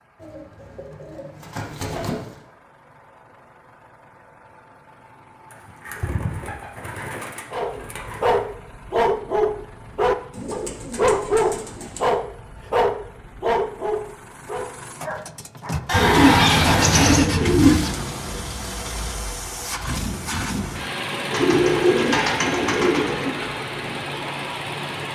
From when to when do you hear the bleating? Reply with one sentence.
The bleating can be heard from 15.8 to 17.2 s.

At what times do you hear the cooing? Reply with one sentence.
The cooing can be heard from 0.2 to 2.4 s, from 5.5 to 8.4 s, from 10.3 to 12.0 s, from 15.9 to 17.9 s and from 21.3 to 23.3 s.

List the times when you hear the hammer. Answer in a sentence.
The hammer can't be heard in this clip.